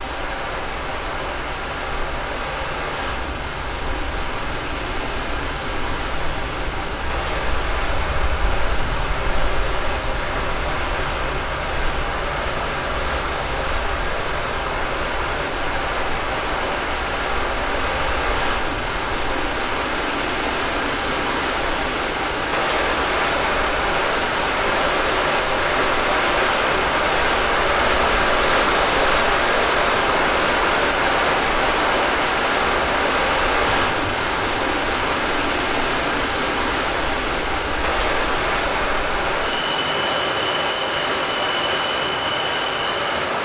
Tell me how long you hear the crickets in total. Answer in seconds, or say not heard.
43 s.